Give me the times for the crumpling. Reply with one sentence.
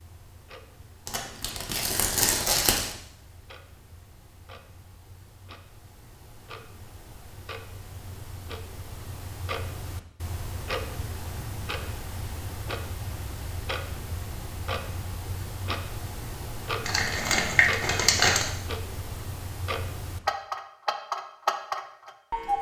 You can hear the crumpling from 1.1 to 3.0 s and from 16.9 to 18.4 s.